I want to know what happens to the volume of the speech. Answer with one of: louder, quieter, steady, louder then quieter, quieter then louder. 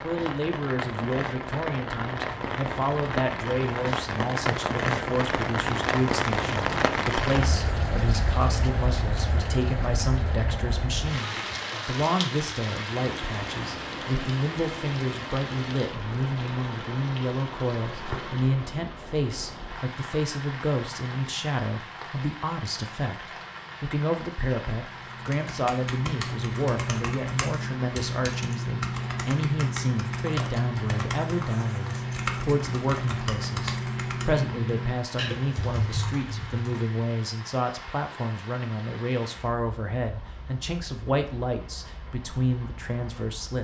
steady.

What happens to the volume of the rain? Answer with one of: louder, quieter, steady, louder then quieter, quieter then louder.
quieter.